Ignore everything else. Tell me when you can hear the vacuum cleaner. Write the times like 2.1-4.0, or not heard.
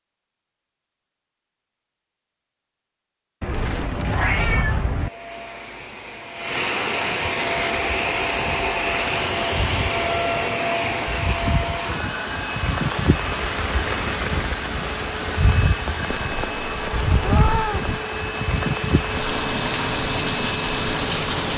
4.9-21.4.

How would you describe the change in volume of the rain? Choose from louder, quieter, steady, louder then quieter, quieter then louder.
louder.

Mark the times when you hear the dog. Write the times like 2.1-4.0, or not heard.
not heard.